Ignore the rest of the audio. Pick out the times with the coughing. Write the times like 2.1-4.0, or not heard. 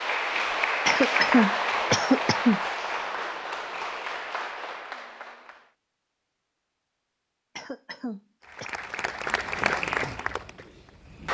0.8-2.6, 7.5-8.7.